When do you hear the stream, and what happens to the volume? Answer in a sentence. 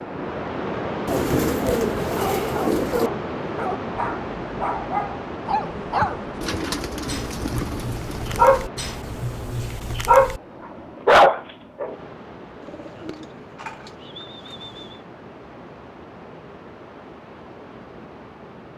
You can hear the stream from 0.0 to 18.7 s, getting quieter.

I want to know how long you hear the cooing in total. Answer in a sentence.
You can hear the cooing for 7 seconds altogether.